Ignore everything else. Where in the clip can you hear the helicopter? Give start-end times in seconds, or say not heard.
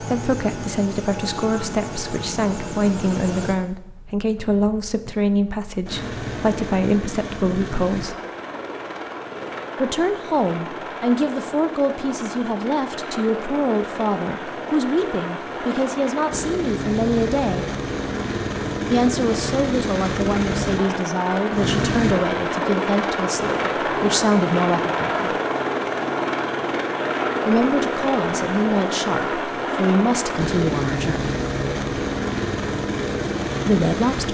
0.0-34.2.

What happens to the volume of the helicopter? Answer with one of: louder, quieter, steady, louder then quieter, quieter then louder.
louder.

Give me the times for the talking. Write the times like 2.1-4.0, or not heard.
0.0-8.2, 9.8-17.6, 18.9-25.4, 27.4-31.4, 33.6-34.2.